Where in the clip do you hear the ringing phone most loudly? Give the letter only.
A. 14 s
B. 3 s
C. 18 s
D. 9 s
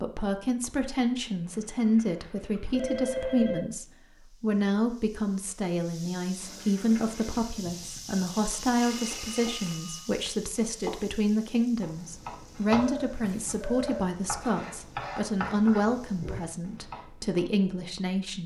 B.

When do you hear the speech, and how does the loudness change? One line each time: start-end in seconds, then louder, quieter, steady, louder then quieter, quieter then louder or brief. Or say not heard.
0.0-18.4 steady.